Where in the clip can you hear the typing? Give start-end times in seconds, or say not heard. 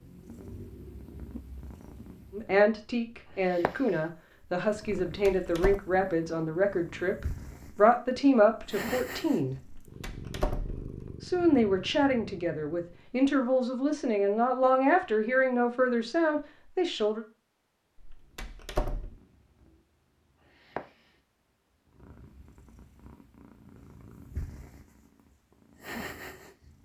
not heard.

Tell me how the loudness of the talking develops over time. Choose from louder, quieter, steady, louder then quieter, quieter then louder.
steady.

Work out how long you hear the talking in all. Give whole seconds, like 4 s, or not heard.
13 s.